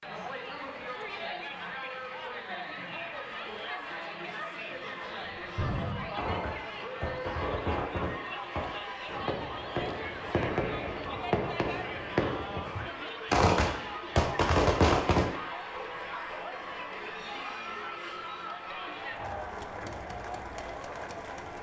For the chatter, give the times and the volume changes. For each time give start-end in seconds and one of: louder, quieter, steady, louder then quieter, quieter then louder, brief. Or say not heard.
0.0-21.5 steady.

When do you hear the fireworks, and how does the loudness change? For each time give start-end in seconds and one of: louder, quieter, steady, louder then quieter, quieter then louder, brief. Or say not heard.
5.2-15.3 louder.